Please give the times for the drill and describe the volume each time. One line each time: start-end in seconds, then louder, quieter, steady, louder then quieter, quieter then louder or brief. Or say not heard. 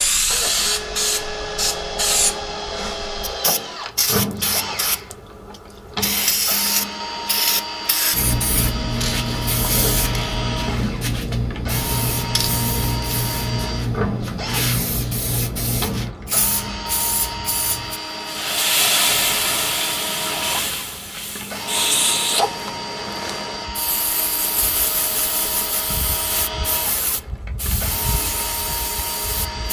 0.0-29.6 steady.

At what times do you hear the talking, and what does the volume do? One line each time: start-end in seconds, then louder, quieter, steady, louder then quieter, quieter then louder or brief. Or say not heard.
not heard.